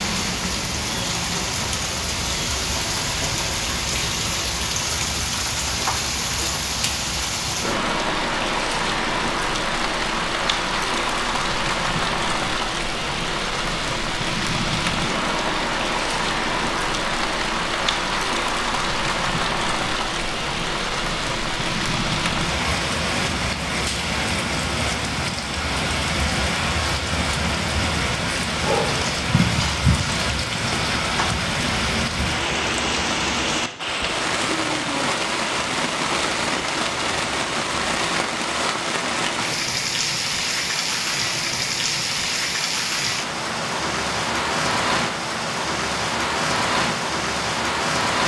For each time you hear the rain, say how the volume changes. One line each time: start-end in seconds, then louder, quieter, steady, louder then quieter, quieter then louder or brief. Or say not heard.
0.0-48.2 steady.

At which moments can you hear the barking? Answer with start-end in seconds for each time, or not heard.
28.5-31.4.